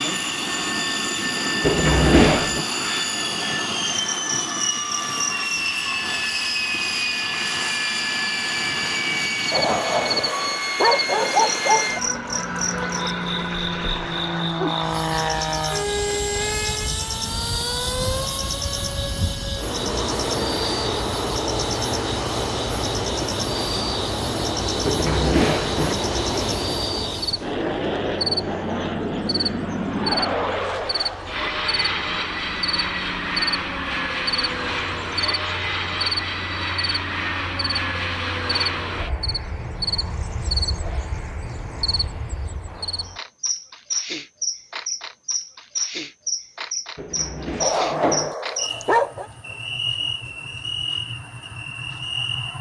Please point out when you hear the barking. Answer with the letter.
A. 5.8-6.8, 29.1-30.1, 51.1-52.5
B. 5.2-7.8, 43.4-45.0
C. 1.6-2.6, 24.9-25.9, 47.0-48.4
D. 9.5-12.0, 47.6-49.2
D.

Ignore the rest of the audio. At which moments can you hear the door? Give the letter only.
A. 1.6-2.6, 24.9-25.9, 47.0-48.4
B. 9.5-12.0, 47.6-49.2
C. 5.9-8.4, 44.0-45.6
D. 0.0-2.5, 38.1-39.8
A.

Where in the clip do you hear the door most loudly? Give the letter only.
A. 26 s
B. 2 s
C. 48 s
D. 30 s
B.